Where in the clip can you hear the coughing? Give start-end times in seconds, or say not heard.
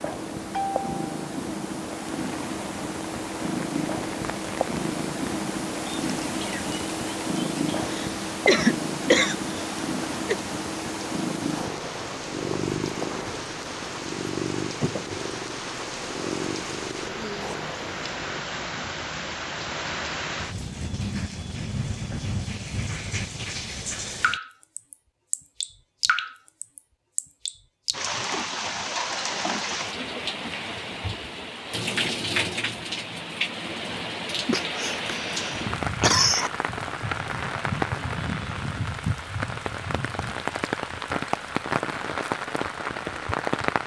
7.8-10.3, 34.5-36.5.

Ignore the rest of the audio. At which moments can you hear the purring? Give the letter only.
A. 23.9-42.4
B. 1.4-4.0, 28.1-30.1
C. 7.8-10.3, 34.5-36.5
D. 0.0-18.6
D.